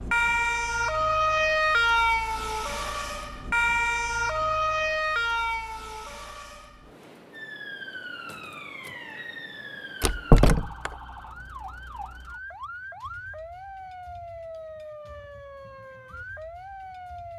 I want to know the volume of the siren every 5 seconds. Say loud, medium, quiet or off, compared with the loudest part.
loud, medium, quiet, quiet.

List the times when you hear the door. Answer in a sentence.
You can hear the door from 10.0 to 10.9 s.